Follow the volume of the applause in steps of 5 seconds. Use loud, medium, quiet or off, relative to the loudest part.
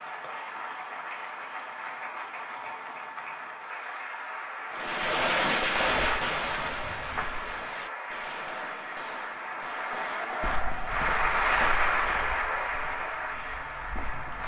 medium, medium, loud.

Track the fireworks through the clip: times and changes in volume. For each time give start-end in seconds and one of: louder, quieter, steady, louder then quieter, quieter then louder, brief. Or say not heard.
4.7-10.6 quieter.